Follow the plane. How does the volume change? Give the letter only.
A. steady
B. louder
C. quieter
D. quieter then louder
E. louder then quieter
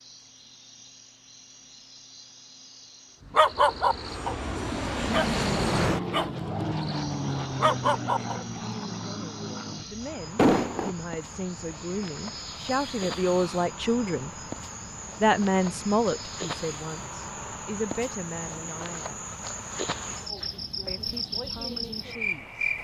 C.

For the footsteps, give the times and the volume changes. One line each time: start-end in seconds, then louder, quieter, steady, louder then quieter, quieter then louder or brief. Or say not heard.
not heard.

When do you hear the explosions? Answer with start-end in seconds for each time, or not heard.
10.3-10.9.